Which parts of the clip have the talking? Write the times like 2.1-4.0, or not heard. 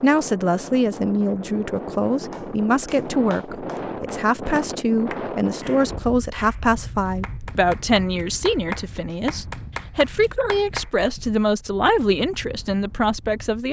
0.0-13.6.